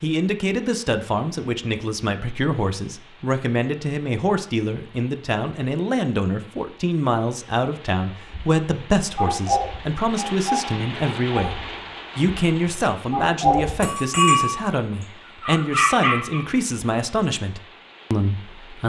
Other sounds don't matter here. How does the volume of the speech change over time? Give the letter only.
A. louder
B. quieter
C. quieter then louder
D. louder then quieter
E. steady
E.